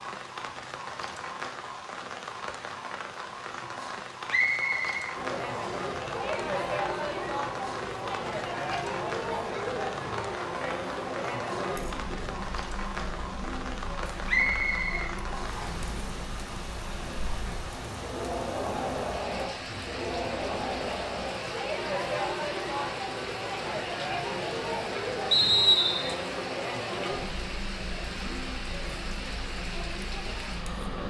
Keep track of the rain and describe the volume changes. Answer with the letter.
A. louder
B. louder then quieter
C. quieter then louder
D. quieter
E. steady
E.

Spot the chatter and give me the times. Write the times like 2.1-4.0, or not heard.
5.2-31.0.